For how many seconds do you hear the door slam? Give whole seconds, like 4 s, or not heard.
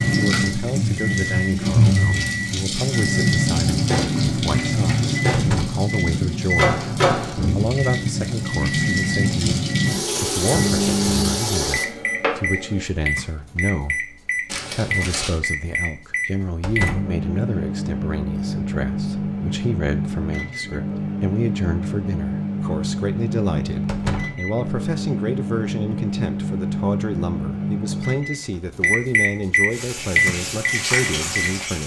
2 s.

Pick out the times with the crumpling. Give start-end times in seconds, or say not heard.
14.4-15.4.